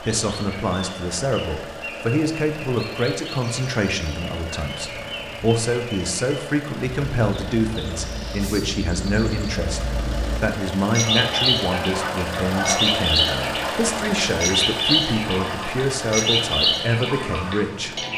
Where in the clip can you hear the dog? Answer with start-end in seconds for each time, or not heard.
11.1-13.1.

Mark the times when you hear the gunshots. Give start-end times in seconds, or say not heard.
not heard.